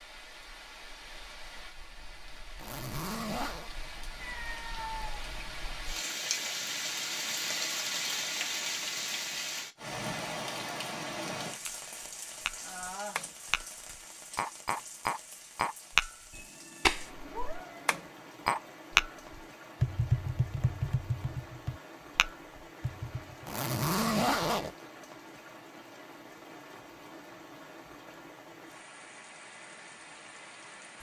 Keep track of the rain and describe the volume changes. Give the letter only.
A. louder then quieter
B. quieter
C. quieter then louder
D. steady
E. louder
A.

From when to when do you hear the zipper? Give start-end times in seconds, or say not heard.
2.5-3.7, 23.4-24.7.